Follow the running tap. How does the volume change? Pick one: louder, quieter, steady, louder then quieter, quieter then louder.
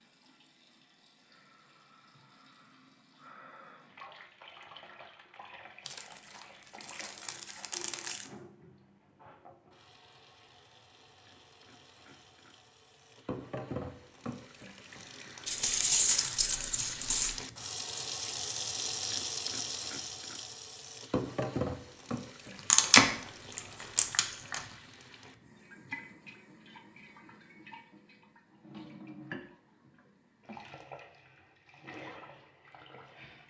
louder then quieter.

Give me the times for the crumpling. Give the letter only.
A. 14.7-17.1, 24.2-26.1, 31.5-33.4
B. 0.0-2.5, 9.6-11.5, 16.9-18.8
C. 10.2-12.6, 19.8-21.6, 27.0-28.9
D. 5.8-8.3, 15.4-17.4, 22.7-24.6
D.